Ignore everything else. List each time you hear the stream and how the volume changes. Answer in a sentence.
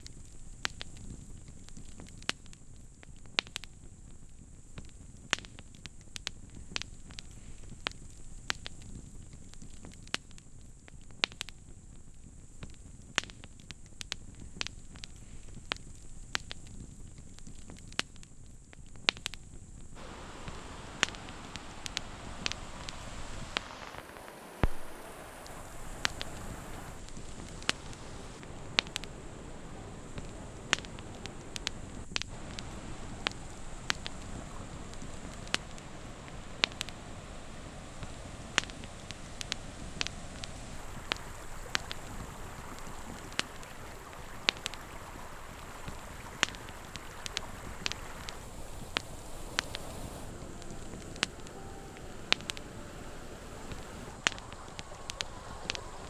You can hear the stream from 19.9 to 56.0 s, at a steady volume.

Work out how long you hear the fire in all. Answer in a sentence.
The fire can be heard for 56 seconds in total.